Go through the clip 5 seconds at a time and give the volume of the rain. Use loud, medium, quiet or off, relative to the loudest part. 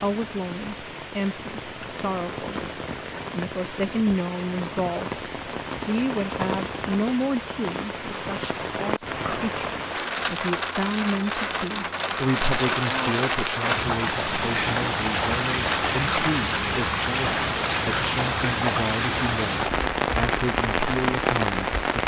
medium, medium, loud, loud, loud.